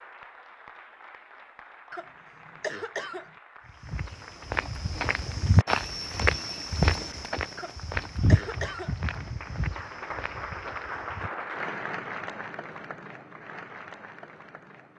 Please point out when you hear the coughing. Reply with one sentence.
You can hear the coughing from 1.9 to 3.3 s and from 7.5 to 8.9 s.